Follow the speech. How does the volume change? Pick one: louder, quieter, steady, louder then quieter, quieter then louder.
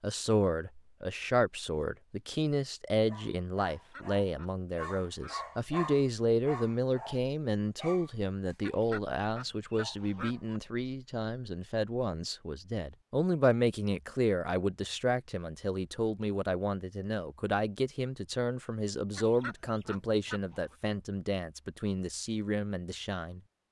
steady.